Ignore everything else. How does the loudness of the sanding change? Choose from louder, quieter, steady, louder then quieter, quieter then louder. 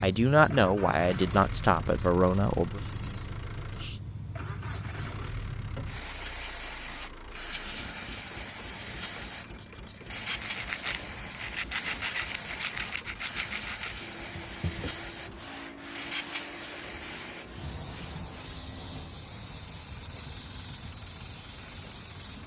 quieter.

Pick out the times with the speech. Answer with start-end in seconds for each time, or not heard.
0.0-2.8.